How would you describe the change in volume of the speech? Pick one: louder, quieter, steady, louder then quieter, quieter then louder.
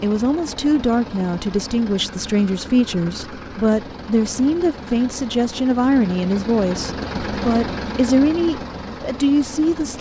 steady.